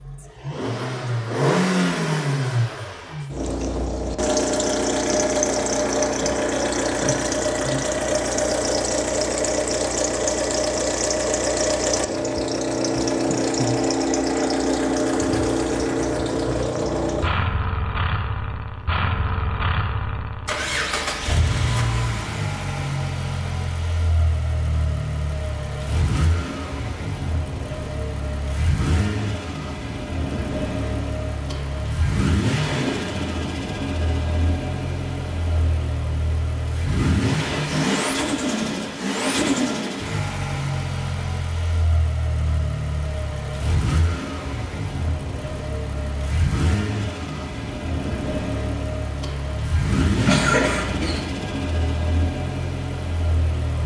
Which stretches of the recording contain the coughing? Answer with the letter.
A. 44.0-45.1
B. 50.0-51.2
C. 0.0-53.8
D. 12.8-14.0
B.